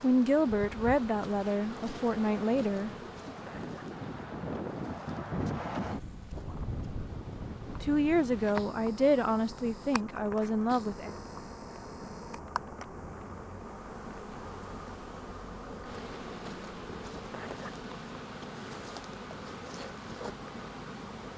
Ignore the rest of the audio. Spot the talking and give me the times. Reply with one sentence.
You can hear the talking from 0.0 to 3.4 s and from 7.8 to 11.2 s.